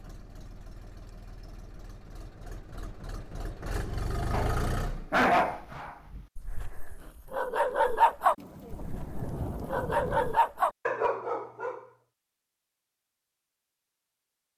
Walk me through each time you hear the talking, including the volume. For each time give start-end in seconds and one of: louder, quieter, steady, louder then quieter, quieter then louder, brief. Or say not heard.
not heard.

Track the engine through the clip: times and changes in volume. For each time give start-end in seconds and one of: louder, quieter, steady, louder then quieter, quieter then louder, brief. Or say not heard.
0.0-5.2 louder.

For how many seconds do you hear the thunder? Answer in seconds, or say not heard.
2 s.